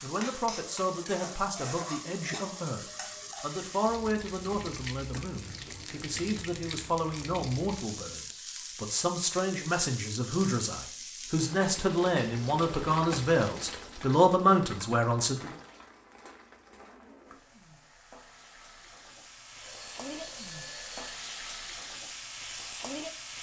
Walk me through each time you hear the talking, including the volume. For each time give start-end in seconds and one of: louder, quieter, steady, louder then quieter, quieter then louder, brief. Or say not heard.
0.0-15.5 louder.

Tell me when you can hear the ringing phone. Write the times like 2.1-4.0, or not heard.
19.6-21.1.